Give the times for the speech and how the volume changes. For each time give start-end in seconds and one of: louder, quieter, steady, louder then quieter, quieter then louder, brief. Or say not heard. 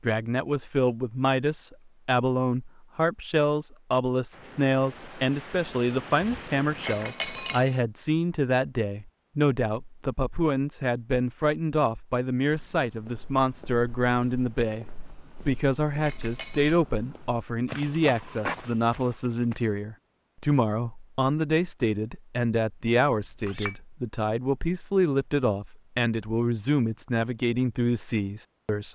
0.0-28.9 steady.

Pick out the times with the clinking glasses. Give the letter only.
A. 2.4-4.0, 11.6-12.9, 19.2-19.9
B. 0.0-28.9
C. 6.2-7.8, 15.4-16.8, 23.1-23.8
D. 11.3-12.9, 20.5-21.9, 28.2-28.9
C.